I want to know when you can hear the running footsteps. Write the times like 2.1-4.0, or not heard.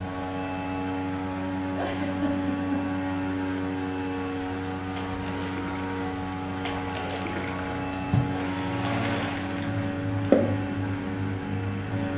not heard.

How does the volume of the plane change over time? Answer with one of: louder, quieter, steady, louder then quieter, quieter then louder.
steady.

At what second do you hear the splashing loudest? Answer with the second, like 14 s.
10 s.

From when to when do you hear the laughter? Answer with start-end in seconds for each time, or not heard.
1.8-2.9.